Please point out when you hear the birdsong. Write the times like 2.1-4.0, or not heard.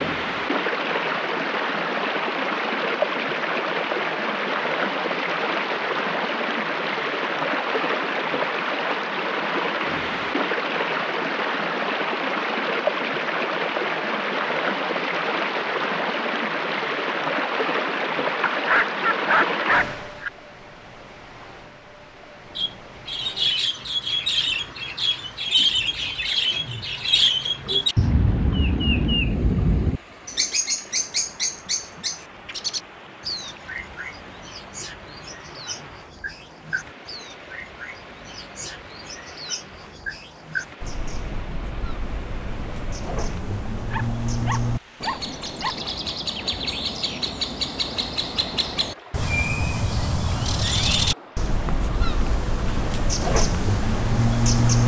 22.6-54.8.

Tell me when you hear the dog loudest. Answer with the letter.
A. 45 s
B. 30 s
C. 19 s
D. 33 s
C.